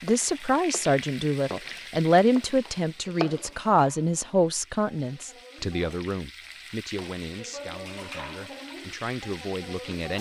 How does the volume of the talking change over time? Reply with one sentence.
The volume of the talking goes down.